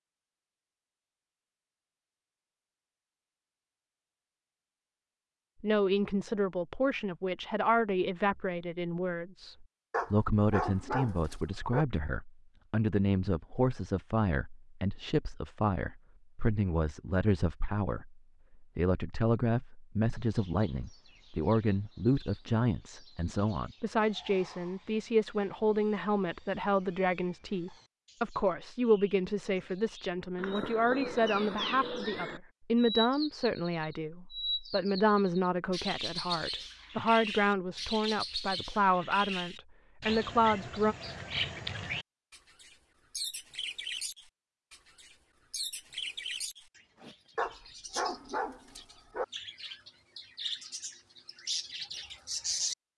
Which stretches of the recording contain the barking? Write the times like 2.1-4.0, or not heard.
9.9-11.8, 47.4-49.2.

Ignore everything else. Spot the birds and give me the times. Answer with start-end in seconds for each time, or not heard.
20.2-52.8.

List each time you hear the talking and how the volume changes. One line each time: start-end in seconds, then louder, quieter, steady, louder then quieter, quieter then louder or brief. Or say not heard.
5.6-41.0 steady.